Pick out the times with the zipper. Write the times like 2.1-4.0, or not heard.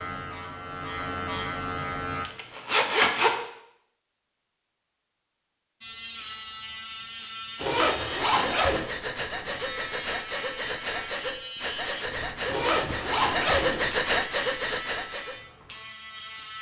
2.2-3.5, 7.6-8.9, 12.4-13.9.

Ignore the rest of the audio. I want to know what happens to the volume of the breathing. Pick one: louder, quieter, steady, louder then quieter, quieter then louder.
louder.